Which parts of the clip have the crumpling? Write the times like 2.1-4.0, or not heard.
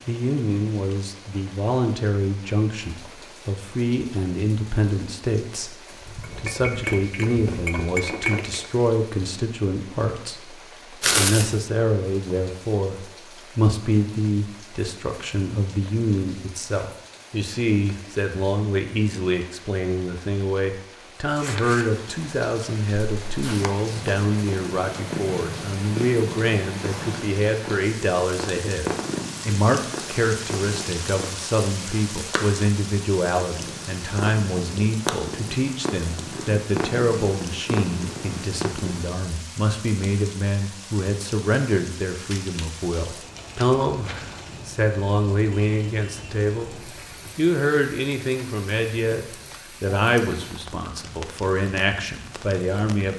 11.0-11.6, 21.2-21.9, 42.3-44.6.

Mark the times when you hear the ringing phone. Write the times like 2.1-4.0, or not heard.
not heard.